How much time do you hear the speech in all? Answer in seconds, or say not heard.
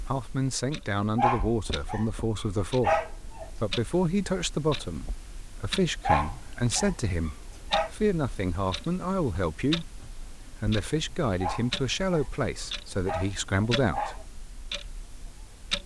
14 s.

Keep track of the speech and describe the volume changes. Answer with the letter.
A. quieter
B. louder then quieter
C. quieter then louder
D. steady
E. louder
D.